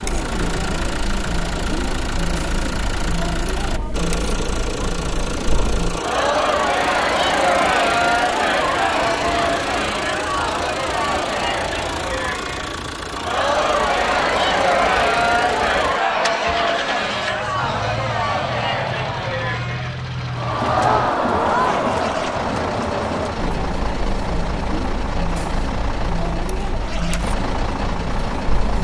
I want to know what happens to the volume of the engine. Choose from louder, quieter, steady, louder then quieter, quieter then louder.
steady.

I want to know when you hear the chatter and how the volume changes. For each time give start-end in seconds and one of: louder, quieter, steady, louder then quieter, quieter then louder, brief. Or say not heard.
0.0-28.7 louder then quieter.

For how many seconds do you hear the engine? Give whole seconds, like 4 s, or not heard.
29 s.